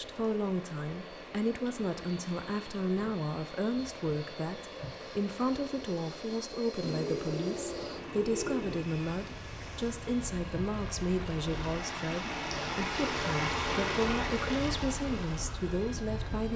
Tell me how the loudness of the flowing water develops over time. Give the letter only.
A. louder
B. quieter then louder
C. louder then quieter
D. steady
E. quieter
A.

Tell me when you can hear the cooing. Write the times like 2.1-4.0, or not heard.
6.8-8.8.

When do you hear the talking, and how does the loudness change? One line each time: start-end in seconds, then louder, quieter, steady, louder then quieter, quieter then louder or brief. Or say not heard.
0.0-16.5 steady.